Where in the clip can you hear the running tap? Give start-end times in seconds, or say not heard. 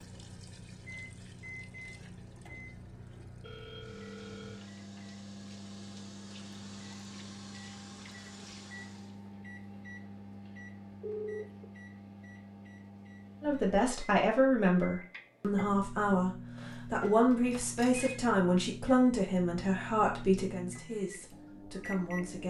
0.0-9.2.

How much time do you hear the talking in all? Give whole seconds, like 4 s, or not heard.
9 s.